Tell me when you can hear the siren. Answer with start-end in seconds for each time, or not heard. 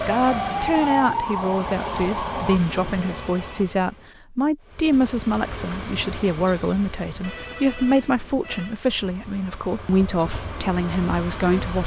0.0-3.6.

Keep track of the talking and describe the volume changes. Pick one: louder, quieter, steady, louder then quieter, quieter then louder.
steady.